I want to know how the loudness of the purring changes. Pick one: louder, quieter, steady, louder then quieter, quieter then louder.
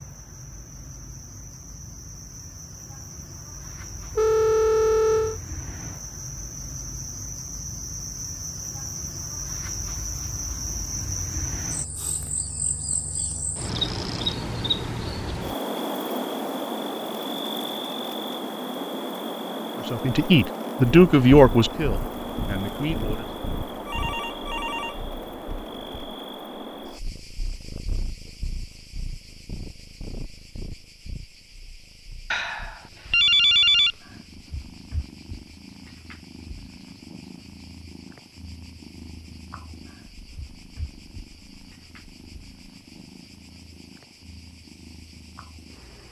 quieter.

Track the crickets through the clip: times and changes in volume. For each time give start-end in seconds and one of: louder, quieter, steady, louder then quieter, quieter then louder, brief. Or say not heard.
0.0-46.0 louder then quieter.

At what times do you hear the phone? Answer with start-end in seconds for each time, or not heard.
4.2-5.4, 23.7-24.9, 32.3-33.9.